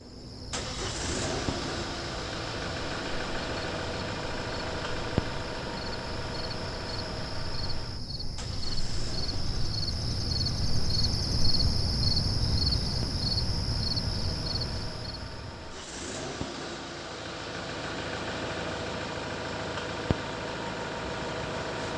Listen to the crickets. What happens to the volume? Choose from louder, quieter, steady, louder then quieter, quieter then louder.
louder.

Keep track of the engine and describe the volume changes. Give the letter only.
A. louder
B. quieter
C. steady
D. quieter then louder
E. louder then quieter
D.